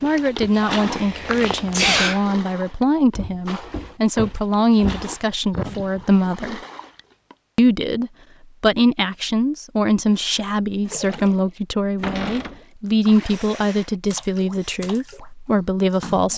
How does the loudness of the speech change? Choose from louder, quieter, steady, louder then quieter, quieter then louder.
steady.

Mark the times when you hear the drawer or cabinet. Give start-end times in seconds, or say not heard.
3.1-5.1, 12.0-12.6.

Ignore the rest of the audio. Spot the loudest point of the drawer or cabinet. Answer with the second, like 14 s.
12 s.